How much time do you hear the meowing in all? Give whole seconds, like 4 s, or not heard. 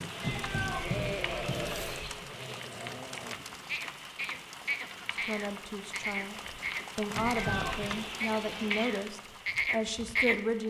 3 s.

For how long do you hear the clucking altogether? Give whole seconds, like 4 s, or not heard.
4 s.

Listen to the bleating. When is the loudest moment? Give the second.
10 s.